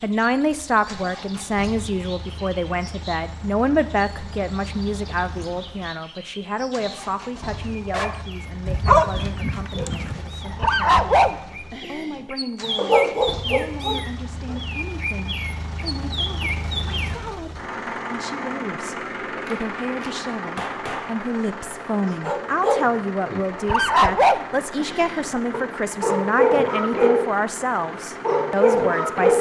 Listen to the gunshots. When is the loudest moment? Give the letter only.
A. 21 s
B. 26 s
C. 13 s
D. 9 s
A.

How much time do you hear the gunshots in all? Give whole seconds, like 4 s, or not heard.
2 s.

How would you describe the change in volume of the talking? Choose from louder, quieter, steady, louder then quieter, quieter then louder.
quieter then louder.